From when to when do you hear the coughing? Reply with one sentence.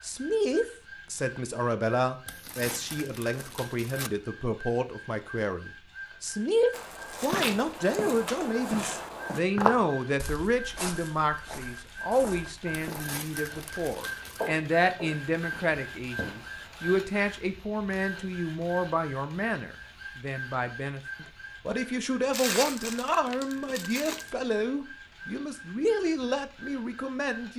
The coughing can't be heard in this clip.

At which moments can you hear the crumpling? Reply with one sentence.
The crumpling can be heard from 2.2 to 4.1 s, from 12.7 to 14.5 s and from 22.3 to 24.3 s.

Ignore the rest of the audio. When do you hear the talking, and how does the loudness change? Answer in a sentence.
You can hear the talking from 0.0 to 27.5 s, at a steady volume.